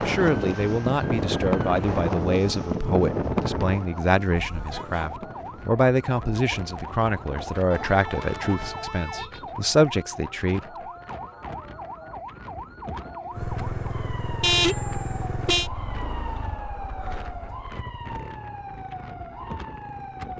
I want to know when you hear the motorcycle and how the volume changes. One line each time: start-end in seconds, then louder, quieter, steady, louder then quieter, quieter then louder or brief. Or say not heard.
13.3-20.3 quieter.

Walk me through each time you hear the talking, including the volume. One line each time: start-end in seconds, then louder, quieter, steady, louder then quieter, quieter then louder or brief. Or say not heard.
0.0-10.6 steady.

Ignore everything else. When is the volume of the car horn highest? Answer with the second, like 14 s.
15 s.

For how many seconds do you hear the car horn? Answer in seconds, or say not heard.
4 s.